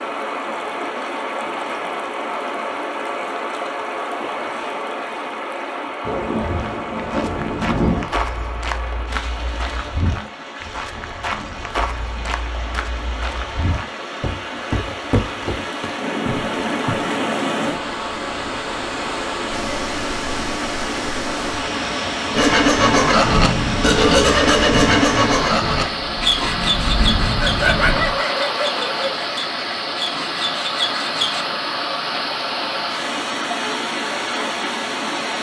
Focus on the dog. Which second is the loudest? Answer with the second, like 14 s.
28 s.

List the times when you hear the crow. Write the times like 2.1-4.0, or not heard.
not heard.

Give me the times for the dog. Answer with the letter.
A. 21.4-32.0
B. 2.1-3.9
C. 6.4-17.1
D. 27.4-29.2
D.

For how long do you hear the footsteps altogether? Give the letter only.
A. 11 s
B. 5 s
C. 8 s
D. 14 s
A.